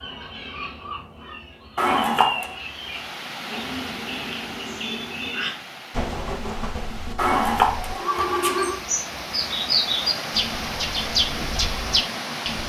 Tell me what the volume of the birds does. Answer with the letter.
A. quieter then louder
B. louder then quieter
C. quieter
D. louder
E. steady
D.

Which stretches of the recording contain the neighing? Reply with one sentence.
The neighing can be heard from 1.8 to 2.5 s and from 7.2 to 8.8 s.